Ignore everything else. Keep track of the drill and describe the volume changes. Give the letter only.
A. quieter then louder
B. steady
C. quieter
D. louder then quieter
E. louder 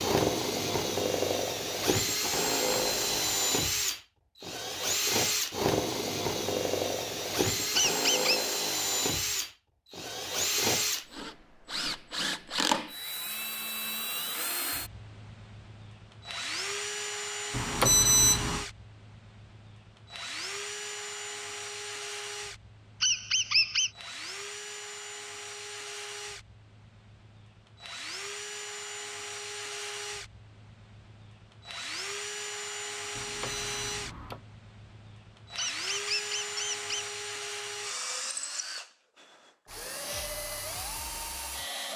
C.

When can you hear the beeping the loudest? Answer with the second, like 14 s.
18 s.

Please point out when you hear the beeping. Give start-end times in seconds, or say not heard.
2.5-3.4, 17.5-18.6, 33.1-34.4.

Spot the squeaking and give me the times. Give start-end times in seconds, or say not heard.
7.8-8.4, 23.0-23.9, 35.5-37.0.